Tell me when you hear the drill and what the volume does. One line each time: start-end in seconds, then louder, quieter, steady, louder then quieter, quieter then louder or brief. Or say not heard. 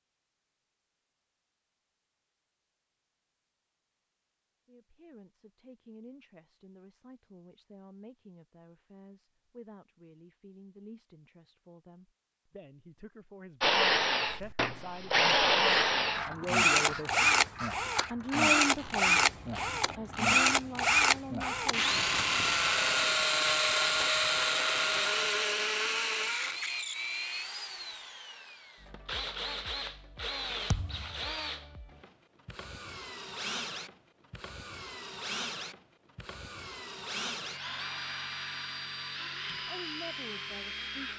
13.6-41.1 quieter.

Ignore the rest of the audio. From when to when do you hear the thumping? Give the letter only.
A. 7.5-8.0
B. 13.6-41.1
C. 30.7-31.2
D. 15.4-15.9
C.